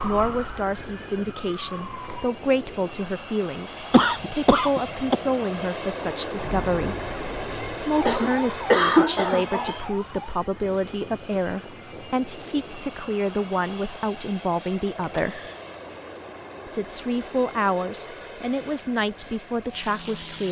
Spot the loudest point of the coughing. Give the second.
9 s.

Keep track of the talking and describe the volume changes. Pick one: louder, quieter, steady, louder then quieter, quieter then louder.
steady.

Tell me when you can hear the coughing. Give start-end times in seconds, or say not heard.
3.9-5.2, 8.0-9.7, 15.0-15.6.